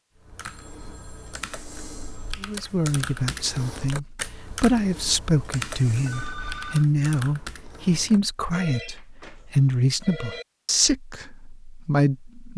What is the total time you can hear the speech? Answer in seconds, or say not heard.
10 s.